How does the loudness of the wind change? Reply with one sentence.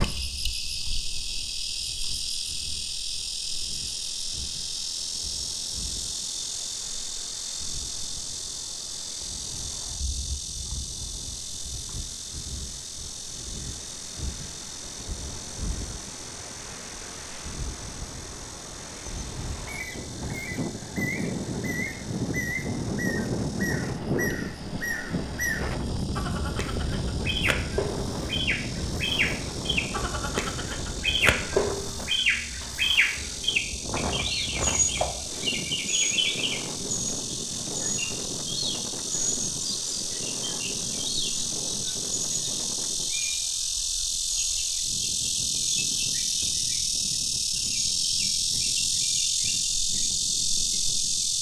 The volume of the wind goes up, then down.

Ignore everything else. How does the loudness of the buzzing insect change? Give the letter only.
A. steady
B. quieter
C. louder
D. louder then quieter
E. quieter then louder
E.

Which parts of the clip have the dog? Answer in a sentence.
You can't hear the dog here.